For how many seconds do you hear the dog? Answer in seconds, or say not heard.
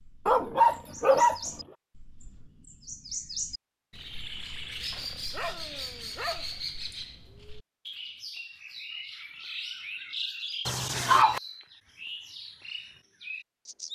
4 s.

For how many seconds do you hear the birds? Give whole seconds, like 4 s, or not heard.
14 s.